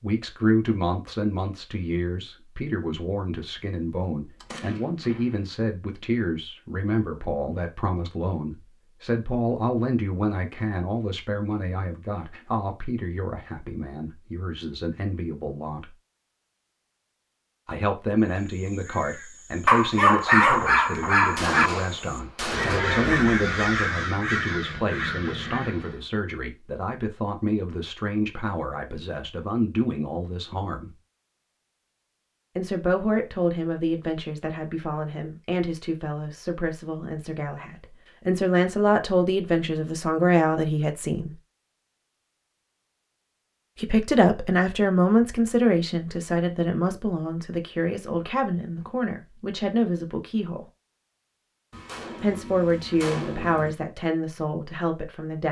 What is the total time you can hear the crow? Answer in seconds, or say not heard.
8 s.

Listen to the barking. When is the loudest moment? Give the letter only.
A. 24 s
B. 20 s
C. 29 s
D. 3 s
B.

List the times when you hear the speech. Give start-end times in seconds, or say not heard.
0.0-15.9, 17.6-30.9, 32.5-41.3, 43.8-50.6, 52.2-55.4.